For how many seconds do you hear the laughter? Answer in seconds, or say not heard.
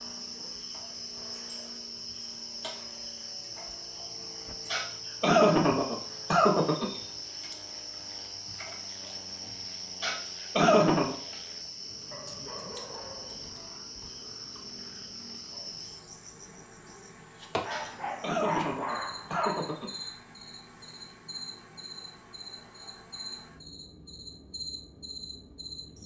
6 s.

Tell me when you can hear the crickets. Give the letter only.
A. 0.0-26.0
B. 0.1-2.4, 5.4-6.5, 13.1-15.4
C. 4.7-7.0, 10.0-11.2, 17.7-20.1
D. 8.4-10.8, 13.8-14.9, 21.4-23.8
A.